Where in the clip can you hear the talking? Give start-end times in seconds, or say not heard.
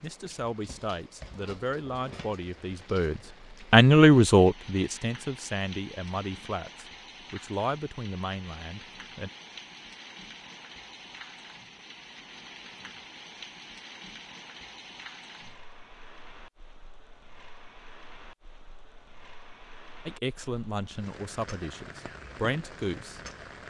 0.0-9.3, 20.1-23.2.